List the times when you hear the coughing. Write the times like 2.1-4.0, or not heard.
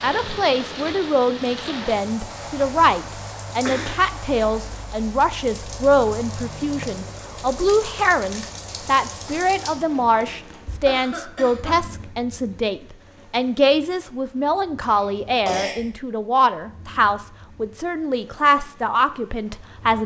3.6-4.0, 10.8-11.8, 14.8-15.8.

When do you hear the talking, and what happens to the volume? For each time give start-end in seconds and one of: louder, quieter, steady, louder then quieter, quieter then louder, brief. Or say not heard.
0.0-20.0 steady.